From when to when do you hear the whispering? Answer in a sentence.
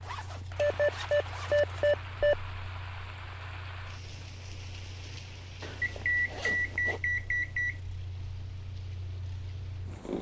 The whispering can't be heard in this clip.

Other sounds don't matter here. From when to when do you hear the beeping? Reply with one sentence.
You can hear the beeping from 0.6 to 2.4 s and from 5.8 to 7.8 s.